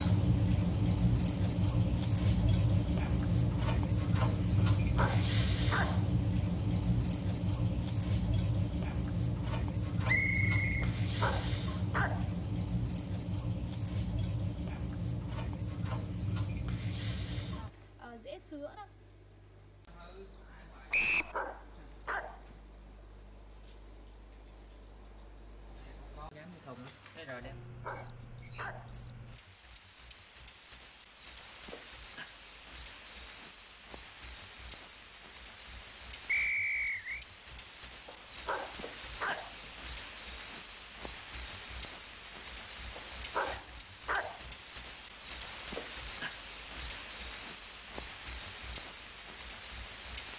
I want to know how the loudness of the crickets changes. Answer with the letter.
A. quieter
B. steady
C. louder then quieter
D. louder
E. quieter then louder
E.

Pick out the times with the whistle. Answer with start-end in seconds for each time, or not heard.
10.1-10.9, 20.9-21.4, 36.2-37.2.